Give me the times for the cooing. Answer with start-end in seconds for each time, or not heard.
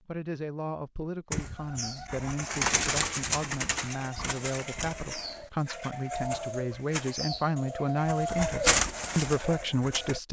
1.3-10.2.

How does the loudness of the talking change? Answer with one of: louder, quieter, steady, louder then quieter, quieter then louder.
louder.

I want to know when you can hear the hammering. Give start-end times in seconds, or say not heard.
not heard.